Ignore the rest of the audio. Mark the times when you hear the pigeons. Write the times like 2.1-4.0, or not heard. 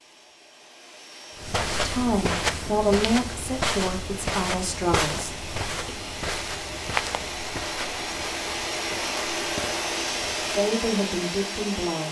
not heard.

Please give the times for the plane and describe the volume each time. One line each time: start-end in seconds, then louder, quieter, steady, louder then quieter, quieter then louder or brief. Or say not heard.
0.0-12.0 louder.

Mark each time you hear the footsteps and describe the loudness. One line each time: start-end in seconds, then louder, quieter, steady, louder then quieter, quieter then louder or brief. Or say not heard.
1.4-10.8 quieter.